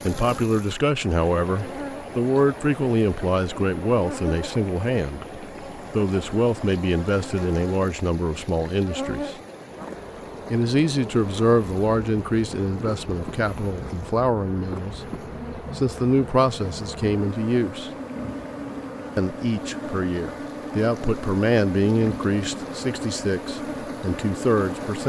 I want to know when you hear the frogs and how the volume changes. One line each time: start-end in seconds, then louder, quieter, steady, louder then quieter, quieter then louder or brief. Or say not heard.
not heard.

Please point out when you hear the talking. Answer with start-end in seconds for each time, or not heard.
0.1-9.3, 10.5-15.1, 15.8-17.9, 19.1-25.0.